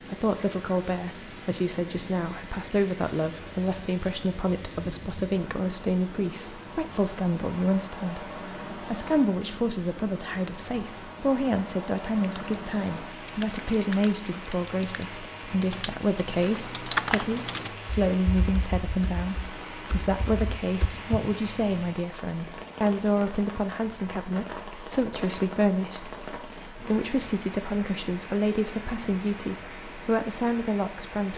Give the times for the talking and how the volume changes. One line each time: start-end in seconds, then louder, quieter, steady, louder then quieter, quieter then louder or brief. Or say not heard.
0.1-31.3 steady.